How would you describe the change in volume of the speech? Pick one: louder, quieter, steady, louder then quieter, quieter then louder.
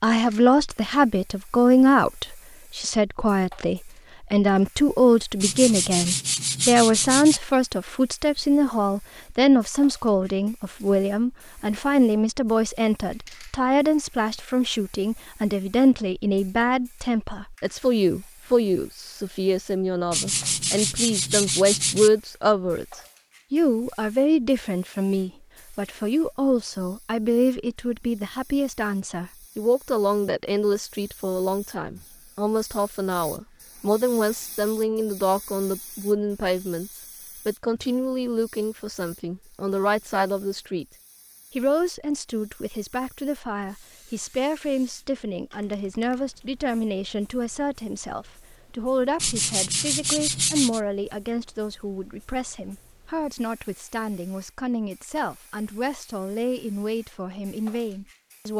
quieter.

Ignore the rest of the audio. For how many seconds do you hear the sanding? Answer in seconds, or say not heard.
6 s.